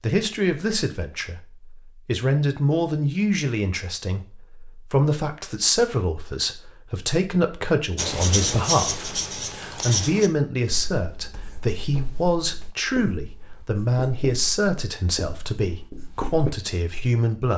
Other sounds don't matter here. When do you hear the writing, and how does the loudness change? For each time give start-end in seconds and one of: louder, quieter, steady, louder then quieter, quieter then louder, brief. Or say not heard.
8.0-16.5 quieter.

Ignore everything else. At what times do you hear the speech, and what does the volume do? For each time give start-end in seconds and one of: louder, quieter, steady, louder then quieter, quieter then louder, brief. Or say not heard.
0.0-17.5 steady.